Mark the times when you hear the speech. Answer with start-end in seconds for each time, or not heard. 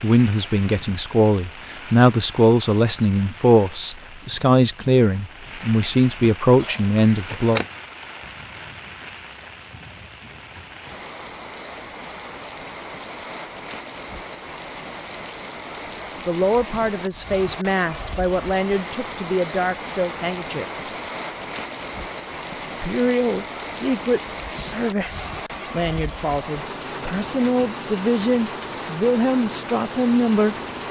0.0-7.7, 15.7-20.6, 22.5-30.6.